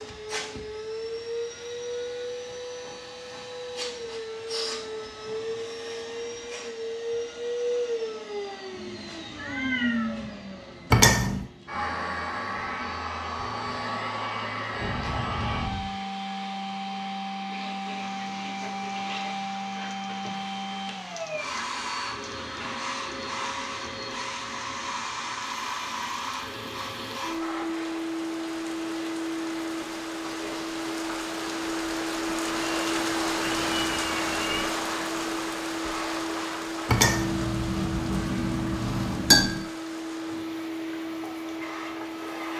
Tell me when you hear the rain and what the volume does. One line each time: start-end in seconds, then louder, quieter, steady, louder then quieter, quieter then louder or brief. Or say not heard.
17.9-42.5 louder then quieter.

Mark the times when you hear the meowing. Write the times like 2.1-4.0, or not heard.
8.7-10.3, 14.8-15.9, 33.4-34.6.